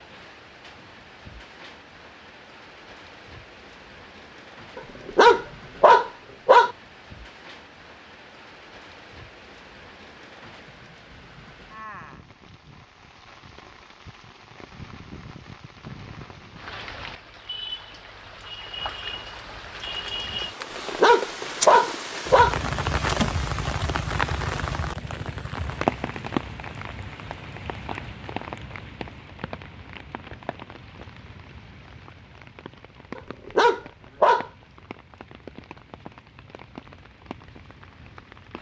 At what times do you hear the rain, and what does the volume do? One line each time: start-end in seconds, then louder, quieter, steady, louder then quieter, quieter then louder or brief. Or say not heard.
0.0-38.5 louder then quieter.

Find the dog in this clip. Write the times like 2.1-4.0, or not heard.
4.8-6.7, 20.6-22.6, 33.1-34.5.